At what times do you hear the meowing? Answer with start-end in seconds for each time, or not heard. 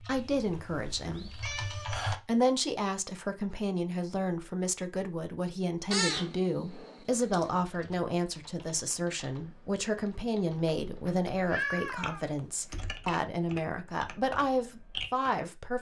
0.1-2.1, 5.9-7.5, 11.1-12.8.